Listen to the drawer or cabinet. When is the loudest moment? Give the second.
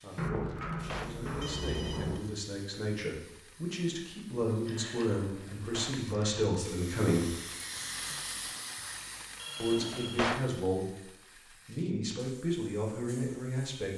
10 s.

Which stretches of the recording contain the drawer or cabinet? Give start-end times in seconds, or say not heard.
0.5-1.2, 5.2-6.0, 9.7-10.5.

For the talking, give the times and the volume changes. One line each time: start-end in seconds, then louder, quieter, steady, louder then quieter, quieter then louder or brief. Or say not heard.
0.0-7.3 louder
9.6-11.1 brief
11.7-13.9 brief.